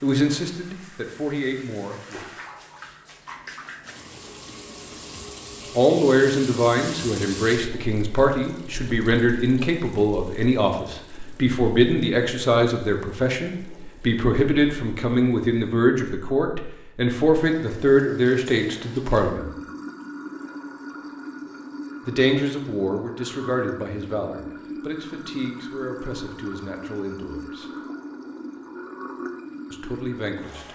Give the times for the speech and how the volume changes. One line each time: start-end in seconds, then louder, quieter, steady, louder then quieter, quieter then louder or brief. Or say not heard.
0.0-2.2 brief
5.8-19.5 steady
22.1-27.7 quieter
29.7-30.7 brief.